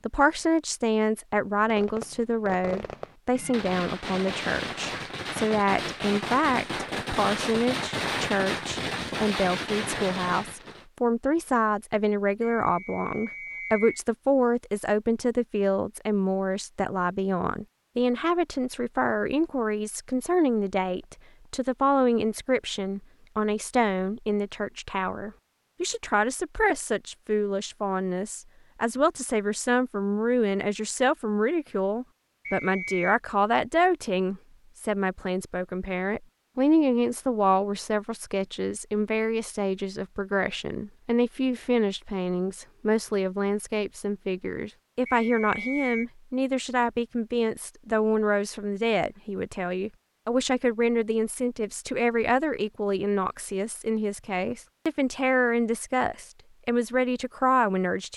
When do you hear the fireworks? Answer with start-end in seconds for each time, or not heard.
1.7-10.8.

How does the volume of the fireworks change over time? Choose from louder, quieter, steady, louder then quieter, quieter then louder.
louder.